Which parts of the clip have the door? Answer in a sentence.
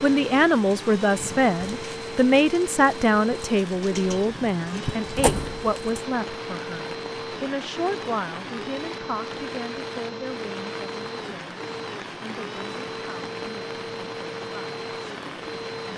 You can hear the door from 4.8 to 6.0 s.